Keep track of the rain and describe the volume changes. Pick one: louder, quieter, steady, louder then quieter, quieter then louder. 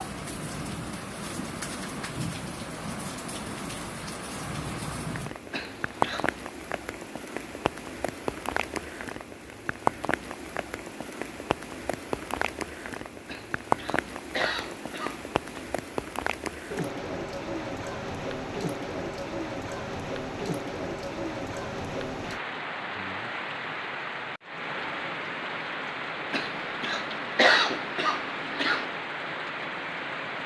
steady.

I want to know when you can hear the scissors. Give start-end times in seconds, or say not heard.
not heard.